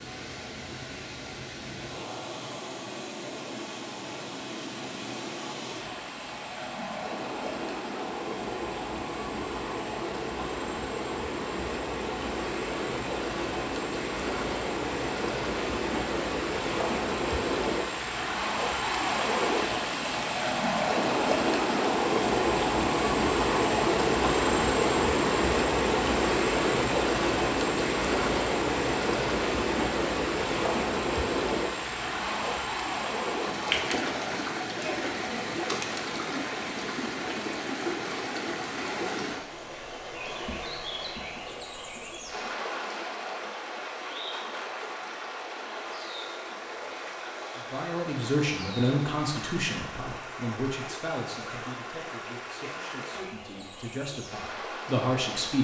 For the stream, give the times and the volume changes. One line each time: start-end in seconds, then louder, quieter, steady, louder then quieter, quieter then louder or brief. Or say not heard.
0.0-55.6 louder then quieter.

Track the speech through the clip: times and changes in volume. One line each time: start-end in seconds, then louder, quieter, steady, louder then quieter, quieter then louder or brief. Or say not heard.
47.7-55.6 quieter then louder.